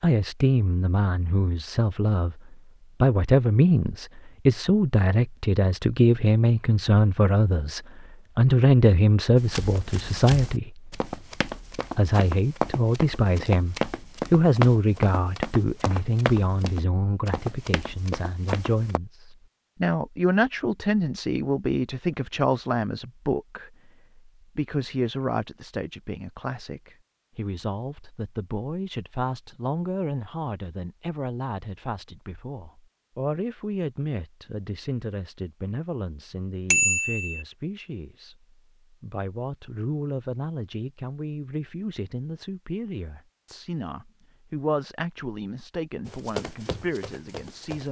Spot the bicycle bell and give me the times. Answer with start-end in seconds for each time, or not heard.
36.7-37.4.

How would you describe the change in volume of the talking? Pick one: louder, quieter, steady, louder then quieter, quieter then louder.
quieter.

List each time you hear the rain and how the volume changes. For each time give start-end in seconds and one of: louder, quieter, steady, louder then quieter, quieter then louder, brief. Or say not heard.
not heard.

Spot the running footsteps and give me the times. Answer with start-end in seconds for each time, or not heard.
9.3-19.0, 46.0-47.8.